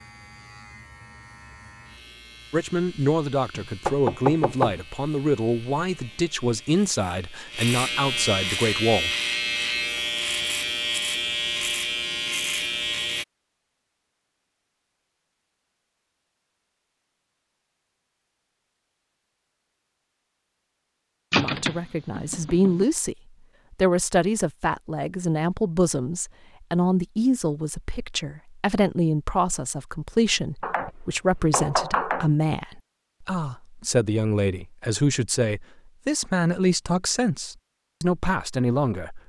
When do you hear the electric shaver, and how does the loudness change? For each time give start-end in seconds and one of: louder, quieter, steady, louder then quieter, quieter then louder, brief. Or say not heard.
0.0-13.2 louder.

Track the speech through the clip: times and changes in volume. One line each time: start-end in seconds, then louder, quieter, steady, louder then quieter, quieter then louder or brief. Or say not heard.
2.5-9.1 steady
21.4-39.2 steady.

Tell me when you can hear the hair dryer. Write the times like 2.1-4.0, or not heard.
not heard.